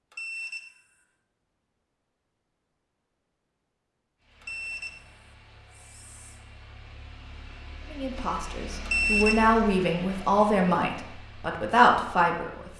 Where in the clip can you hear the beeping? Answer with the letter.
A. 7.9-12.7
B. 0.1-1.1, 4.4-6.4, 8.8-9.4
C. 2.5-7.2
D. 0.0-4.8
B.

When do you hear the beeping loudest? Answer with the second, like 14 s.
9 s.